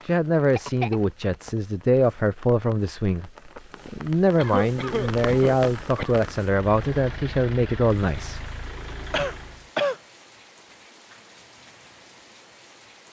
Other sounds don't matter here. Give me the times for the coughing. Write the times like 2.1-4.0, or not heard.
0.6-1.0, 4.3-6.2, 9.1-10.0.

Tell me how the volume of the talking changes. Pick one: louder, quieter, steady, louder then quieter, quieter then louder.
steady.